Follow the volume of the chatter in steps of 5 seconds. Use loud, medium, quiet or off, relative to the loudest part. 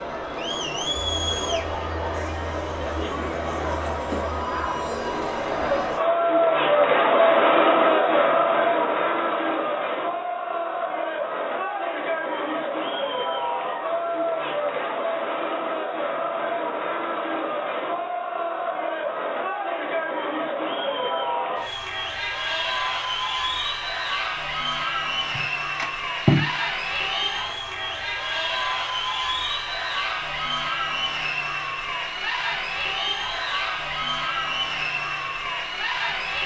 medium, loud, medium, medium, medium, medium, medium, medium.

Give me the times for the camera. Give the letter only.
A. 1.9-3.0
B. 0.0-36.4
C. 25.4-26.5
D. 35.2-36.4
C.